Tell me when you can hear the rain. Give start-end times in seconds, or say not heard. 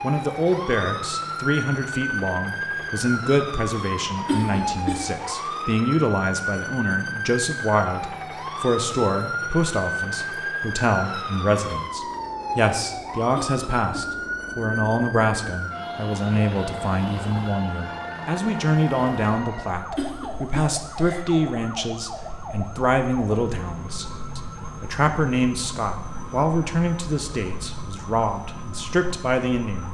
not heard.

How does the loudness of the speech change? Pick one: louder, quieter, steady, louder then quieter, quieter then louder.
steady.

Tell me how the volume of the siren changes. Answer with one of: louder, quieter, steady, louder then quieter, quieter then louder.
quieter.